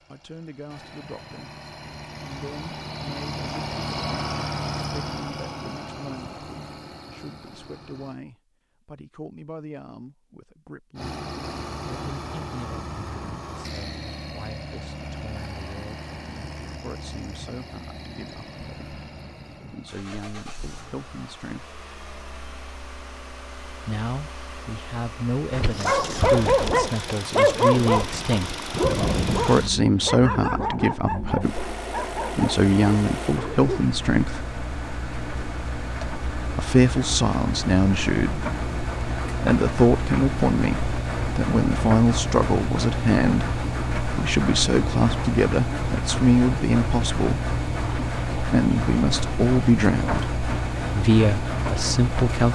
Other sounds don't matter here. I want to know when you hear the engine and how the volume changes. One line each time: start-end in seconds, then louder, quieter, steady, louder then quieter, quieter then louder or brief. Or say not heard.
0.0-8.2 louder then quieter
10.9-52.5 louder.